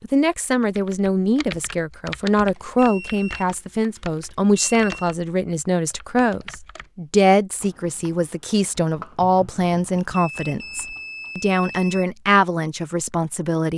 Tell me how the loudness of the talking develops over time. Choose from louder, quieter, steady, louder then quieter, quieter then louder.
steady.